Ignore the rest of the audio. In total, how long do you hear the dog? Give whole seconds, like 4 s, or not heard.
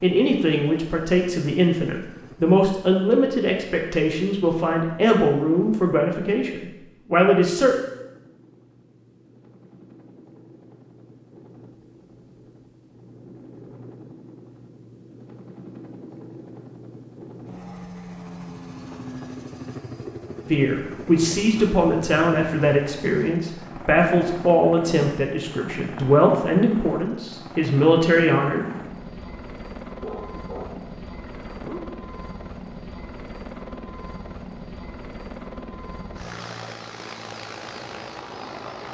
2 s.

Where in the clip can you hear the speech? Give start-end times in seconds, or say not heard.
0.0-7.8, 20.5-28.6.